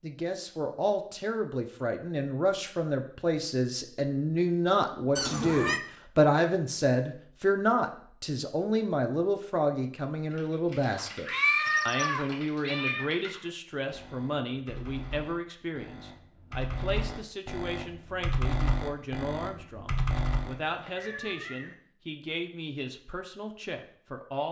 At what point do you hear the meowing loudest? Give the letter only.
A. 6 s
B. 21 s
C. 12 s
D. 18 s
C.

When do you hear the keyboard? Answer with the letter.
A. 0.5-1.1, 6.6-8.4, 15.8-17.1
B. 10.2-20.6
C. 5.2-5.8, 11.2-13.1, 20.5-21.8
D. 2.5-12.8
B.